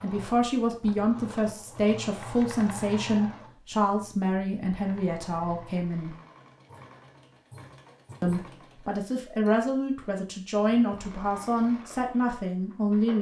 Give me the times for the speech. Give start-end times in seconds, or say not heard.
0.0-6.2, 8.2-13.1.